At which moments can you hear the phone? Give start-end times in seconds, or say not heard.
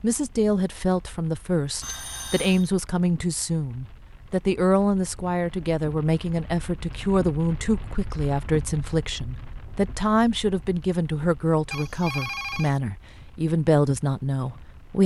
1.8-2.7, 11.7-12.8.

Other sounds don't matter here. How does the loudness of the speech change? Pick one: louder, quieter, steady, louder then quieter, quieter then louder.
steady.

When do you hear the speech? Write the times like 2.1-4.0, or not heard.
0.0-15.0.